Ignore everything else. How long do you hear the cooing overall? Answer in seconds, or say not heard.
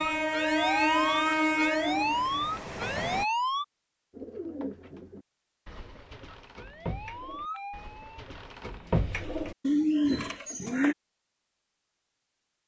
7 s.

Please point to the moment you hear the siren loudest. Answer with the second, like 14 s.
1 s.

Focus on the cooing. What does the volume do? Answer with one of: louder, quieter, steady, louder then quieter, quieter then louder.
quieter then louder.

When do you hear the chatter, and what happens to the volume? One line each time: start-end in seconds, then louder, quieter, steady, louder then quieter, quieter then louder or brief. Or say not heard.
not heard.